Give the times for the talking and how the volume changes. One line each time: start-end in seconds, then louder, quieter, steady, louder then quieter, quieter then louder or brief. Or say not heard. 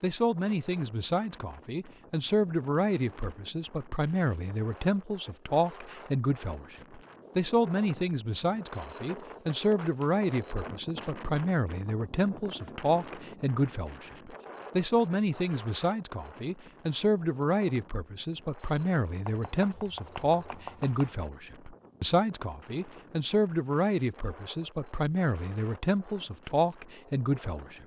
0.0-27.8 steady.